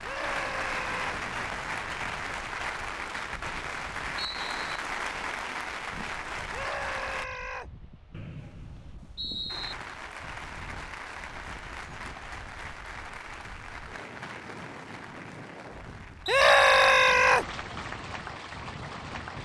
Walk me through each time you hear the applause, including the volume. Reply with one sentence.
You can hear the applause from 0.0 to 7.2 s, at a steady volume; and from 9.5 to 19.3 s, getting quieter then louder.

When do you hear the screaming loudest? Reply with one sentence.
The volume of the screaming peaks at 17 seconds.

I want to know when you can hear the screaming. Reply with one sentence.
You can hear the screaming from 0.0 to 1.2 s, from 6.5 to 7.7 s and from 16.2 to 17.4 s.